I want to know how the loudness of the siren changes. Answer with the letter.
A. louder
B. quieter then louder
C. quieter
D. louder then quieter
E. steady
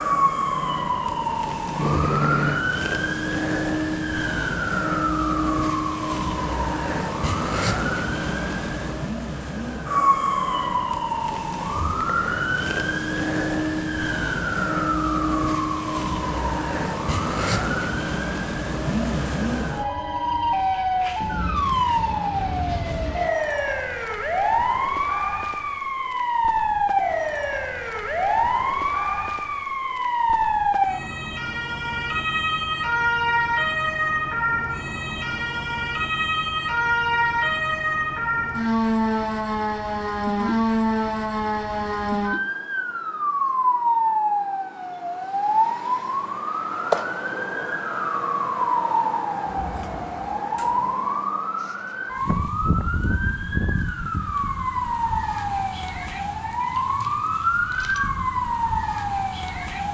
E.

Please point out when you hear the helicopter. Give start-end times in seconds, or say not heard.
0.0-2.6.